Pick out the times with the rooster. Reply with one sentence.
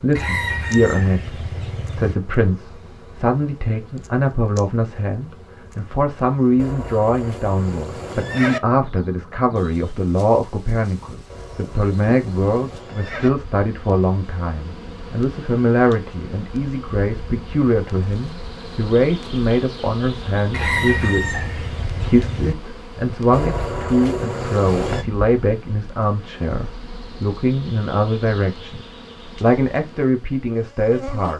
You can hear the rooster from 0.1 to 2.1 s and from 20.5 to 22.6 s.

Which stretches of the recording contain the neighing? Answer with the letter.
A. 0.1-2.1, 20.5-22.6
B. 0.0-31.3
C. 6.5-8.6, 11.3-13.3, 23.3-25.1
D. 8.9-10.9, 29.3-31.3
C.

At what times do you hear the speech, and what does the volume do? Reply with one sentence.
The speech can be heard from 0.0 to 31.3 s, at a steady volume.